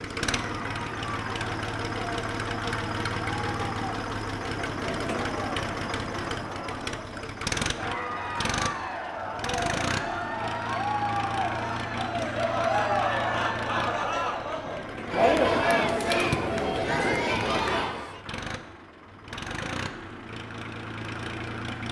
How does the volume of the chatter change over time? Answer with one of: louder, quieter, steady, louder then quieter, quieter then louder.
louder.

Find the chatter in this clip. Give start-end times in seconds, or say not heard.
0.2-18.2.